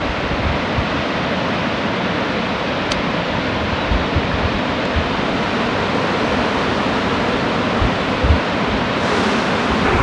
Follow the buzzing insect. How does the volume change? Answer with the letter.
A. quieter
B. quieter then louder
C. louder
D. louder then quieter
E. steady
C.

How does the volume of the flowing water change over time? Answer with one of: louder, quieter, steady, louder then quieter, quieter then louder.
steady.